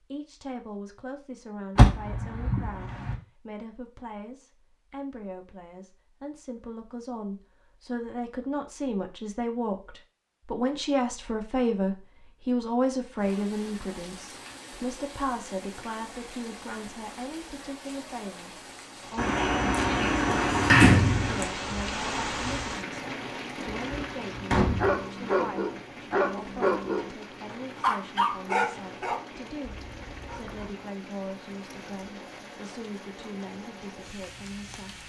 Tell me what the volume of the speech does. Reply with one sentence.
The volume of the speech goes up, then down.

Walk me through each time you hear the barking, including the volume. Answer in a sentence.
The barking can be heard from 24.8 to 30.7 s, getting quieter.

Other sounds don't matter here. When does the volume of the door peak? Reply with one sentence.
The volume of the door peaks at 21 seconds.